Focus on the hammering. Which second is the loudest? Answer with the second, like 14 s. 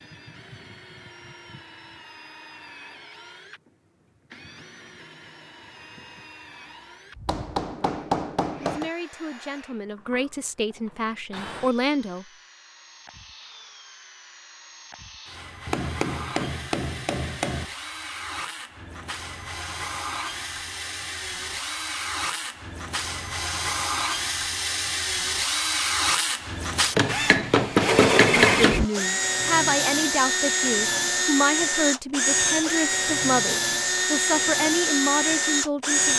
28 s.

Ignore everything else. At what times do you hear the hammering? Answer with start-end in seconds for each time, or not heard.
7.2-8.9, 15.7-17.6, 26.9-28.9.